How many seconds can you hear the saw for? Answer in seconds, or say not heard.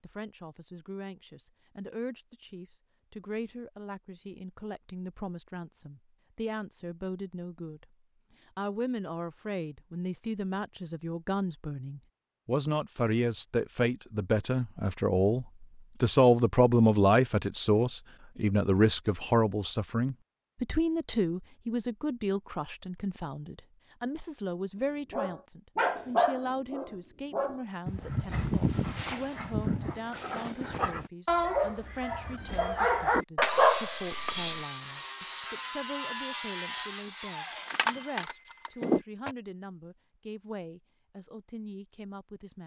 6 s.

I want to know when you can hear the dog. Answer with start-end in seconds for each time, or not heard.
25.1-34.6.